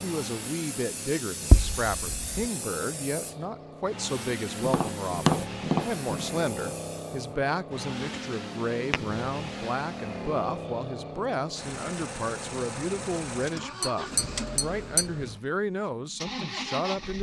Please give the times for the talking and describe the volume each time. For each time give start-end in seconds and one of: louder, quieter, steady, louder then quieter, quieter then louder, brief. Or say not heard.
0.0-17.1 steady.